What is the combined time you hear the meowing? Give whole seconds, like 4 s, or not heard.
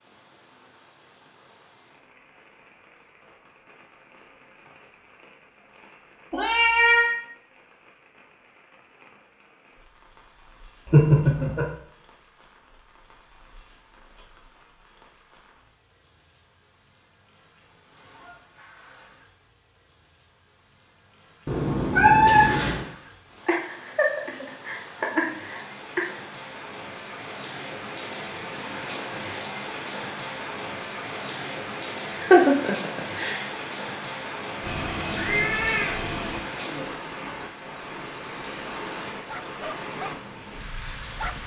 4 s.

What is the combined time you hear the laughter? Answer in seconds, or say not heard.
5 s.